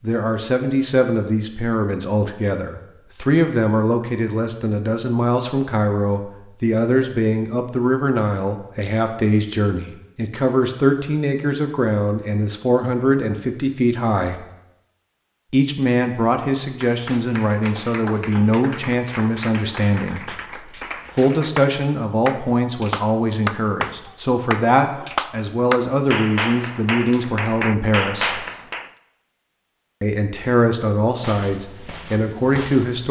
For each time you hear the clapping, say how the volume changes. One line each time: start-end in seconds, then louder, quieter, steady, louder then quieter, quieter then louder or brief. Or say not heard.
16.9-28.9 louder.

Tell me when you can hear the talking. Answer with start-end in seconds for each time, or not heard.
0.0-14.4, 15.5-20.4, 21.1-28.4, 30.0-33.0.